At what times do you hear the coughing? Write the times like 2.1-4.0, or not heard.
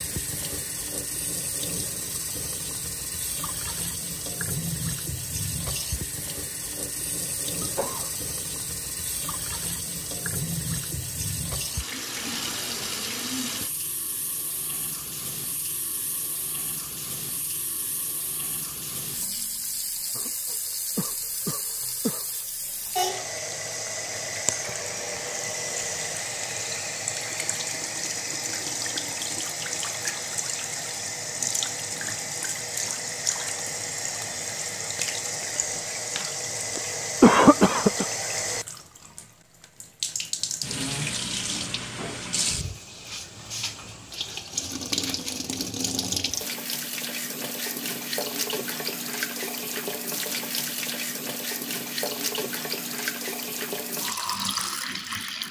7.6-8.1, 20.1-22.2, 37.2-38.0.